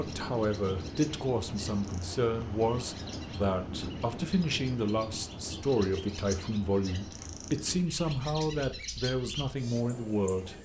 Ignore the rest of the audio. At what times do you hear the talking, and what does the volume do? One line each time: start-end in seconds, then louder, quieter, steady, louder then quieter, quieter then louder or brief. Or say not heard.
0.0-10.5 steady.